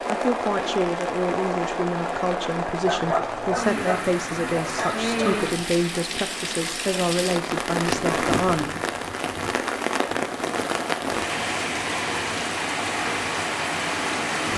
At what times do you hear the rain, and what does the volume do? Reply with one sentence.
The rain can be heard from 0.0 to 14.5 s, at a steady volume.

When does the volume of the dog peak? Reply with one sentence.
The volume of the dog peaks at 3 seconds.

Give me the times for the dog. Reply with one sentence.
You can hear the dog from 2.8 to 5.5 s.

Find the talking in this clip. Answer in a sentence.
You can hear the talking from 0.1 to 8.7 s.